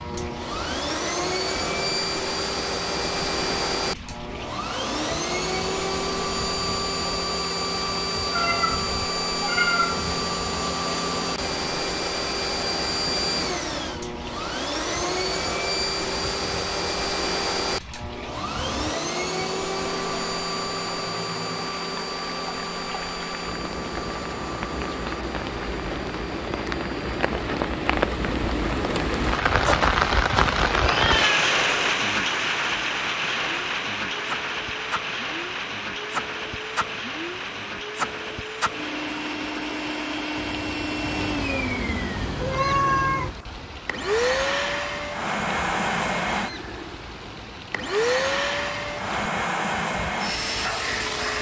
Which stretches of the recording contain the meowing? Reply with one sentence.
You can hear the meowing from 8.3 to 10.1 s, from 30.8 to 31.9 s and from 41.0 to 43.4 s.